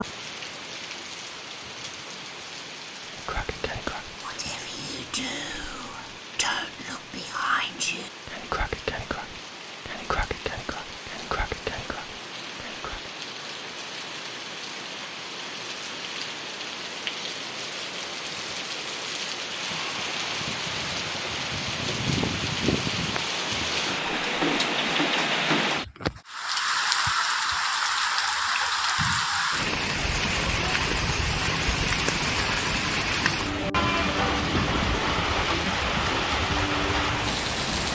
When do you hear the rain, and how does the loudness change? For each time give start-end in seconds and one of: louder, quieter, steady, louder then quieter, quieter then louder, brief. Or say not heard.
0.0-37.9 louder.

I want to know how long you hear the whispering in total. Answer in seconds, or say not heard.
10 s.